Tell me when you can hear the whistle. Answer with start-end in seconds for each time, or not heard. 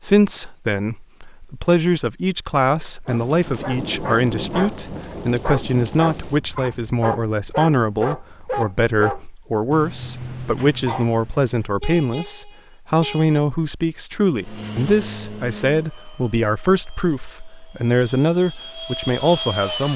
not heard.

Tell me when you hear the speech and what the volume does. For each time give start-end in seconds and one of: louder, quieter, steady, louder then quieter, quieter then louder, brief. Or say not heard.
0.0-19.9 steady.